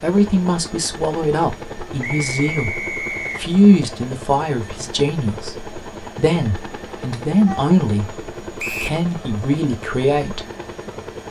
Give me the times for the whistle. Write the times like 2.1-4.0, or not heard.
2.0-3.4, 8.6-9.0.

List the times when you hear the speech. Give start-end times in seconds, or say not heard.
0.0-8.1, 8.8-10.4.